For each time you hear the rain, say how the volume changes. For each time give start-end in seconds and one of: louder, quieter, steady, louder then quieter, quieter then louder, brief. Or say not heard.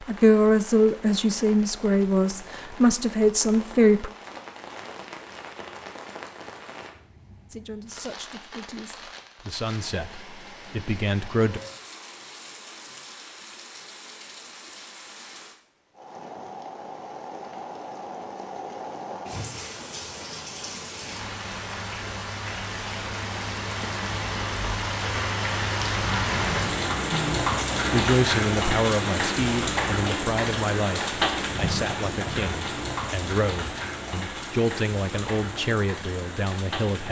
0.0-37.0 louder.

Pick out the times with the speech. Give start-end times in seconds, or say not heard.
0.0-4.1, 7.5-11.6, 27.1-37.0.